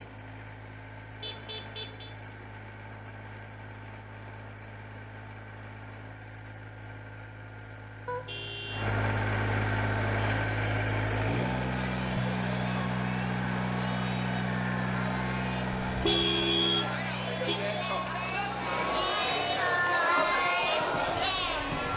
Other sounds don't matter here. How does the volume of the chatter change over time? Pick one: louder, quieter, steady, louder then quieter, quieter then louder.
louder.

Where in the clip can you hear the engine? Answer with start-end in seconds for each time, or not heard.
0.0-21.9.